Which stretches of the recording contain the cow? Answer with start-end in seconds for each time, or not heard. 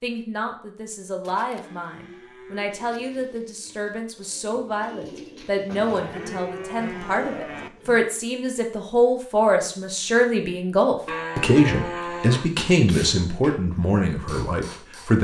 1.2-2.8, 5.7-7.7, 11.1-12.9.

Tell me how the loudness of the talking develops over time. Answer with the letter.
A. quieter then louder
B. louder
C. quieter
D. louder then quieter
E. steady
B.